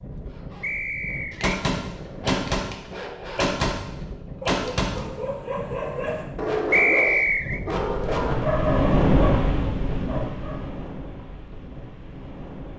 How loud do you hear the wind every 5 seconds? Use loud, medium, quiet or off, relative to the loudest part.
quiet, loud, medium.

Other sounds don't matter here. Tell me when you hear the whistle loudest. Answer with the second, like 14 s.
7 s.